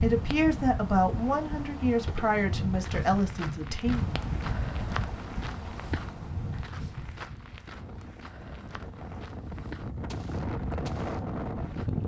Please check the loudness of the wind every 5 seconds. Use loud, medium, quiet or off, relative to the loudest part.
loud, medium, loud.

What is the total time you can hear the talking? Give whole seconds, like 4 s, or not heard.
4 s.